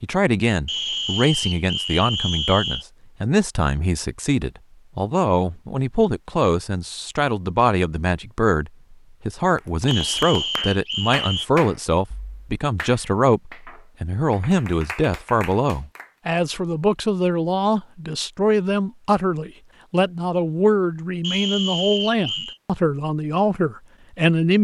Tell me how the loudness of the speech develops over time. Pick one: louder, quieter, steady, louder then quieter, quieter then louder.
steady.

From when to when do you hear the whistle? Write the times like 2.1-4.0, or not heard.
0.7-2.9, 9.8-11.4, 21.2-22.6.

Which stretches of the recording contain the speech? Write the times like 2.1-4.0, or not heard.
0.0-24.6.